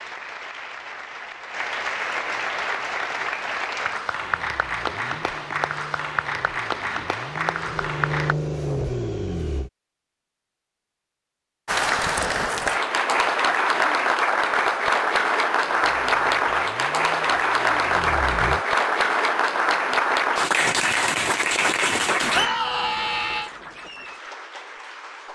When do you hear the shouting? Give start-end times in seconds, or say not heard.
22.3-23.5.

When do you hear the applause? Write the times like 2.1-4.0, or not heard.
0.0-8.3, 11.7-25.2.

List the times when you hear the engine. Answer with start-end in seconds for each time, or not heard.
4.2-9.7, 15.6-18.6.